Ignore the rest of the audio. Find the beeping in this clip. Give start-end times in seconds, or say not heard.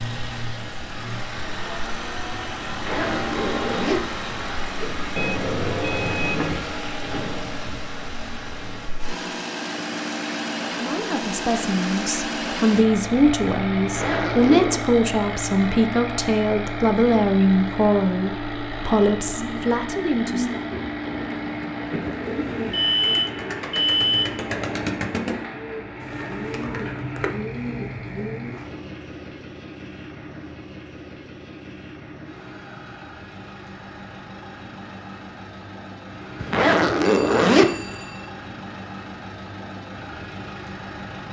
5.2-6.7, 22.7-24.4, 37.0-38.3.